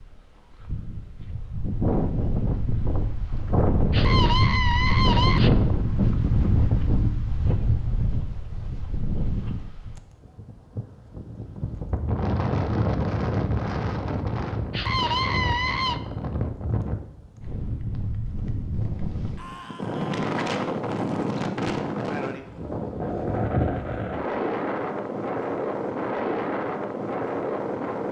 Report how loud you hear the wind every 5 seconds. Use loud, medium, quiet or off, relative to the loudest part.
loud, loud, loud, medium, loud, loud.